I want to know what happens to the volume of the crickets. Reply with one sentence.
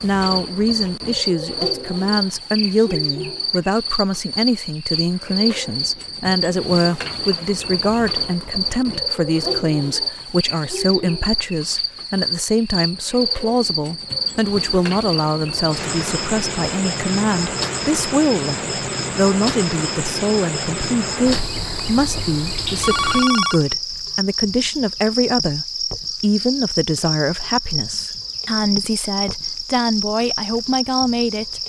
The loudness of the crickets stays about the same.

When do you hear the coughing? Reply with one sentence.
You can't hear the coughing here.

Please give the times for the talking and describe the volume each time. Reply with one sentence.
You can hear the talking from 0.0 to 31.6 s, at a steady volume.